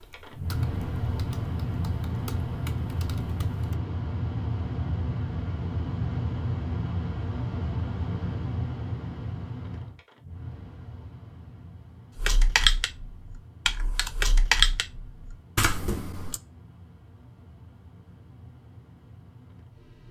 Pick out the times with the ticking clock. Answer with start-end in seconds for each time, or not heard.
not heard.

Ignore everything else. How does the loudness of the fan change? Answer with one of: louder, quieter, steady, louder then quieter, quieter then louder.
quieter.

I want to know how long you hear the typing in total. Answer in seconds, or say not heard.
8 s.